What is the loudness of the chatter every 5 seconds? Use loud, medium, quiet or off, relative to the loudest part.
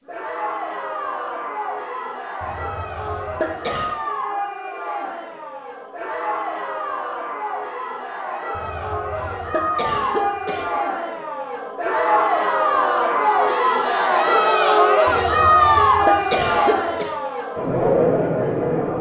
medium, medium, loud, loud.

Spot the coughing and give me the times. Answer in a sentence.
The coughing can be heard from 2.4 to 4.0 s, from 8.6 to 10.8 s and from 15.1 to 17.1 s.